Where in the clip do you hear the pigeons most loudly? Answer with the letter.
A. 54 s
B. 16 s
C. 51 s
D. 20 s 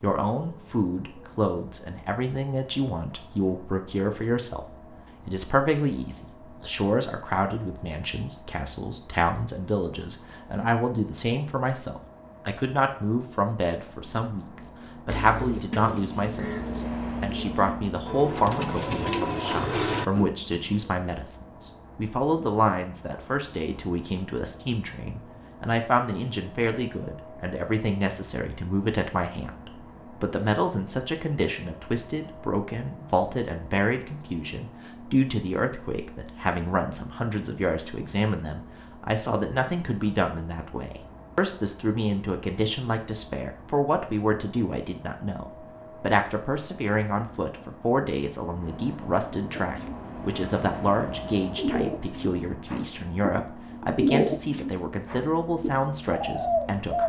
A.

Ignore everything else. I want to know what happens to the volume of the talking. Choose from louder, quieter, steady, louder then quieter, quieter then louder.
steady.